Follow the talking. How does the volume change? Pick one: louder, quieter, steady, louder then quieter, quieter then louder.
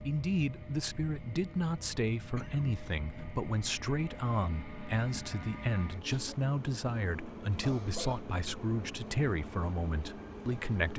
steady.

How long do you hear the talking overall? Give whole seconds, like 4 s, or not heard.
11 s.